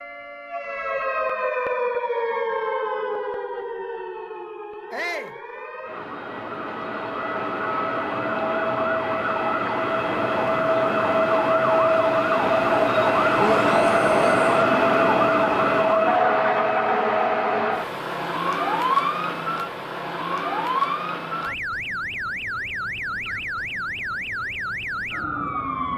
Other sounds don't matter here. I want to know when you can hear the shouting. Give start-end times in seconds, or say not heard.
4.9-5.3, 13.3-14.6.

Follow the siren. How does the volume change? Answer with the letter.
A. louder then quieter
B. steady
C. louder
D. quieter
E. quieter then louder
A.